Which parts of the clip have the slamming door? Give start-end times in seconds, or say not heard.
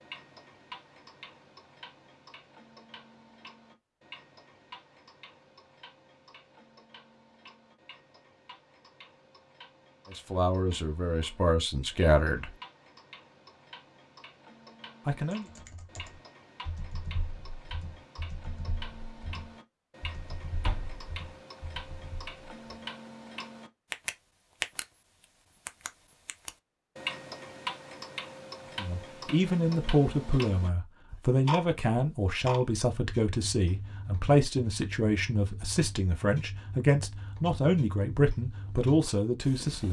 20.6-21.1.